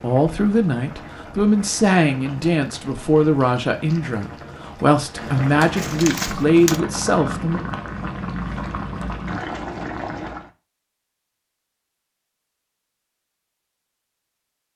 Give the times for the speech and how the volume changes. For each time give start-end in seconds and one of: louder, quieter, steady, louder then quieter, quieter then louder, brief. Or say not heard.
0.0-7.6 steady.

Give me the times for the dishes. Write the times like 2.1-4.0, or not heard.
not heard.